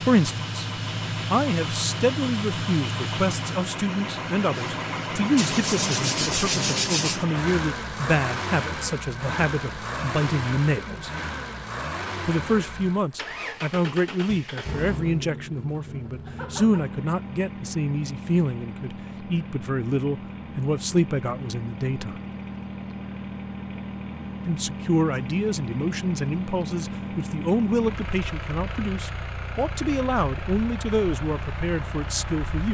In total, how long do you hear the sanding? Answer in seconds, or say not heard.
2 s.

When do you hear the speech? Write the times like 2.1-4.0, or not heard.
0.0-0.7, 1.3-11.1, 12.2-22.1, 24.4-32.6.